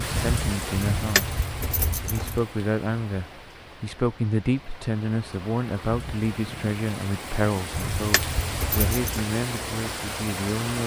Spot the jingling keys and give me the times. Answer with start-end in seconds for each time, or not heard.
0.8-2.4, 7.7-9.1.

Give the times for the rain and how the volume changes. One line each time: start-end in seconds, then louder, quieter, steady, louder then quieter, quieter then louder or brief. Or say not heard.
0.0-10.8 quieter then louder.